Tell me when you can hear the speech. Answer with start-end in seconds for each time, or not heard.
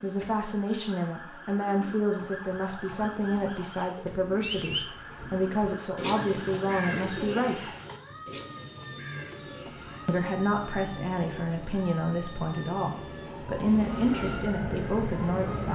0.0-7.7, 10.1-15.7.